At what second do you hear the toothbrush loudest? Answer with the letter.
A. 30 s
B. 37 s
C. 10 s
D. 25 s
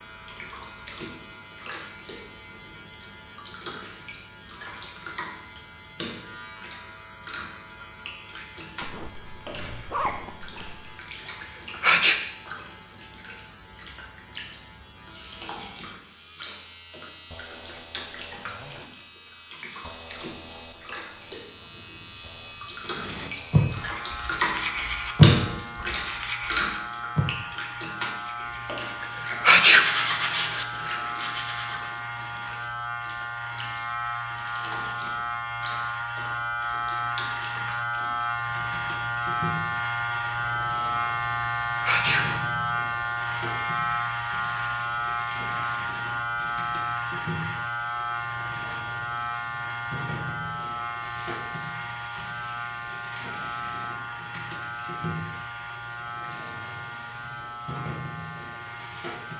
D.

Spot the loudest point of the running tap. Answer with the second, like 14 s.
25 s.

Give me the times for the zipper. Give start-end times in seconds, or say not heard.
8.8-10.8.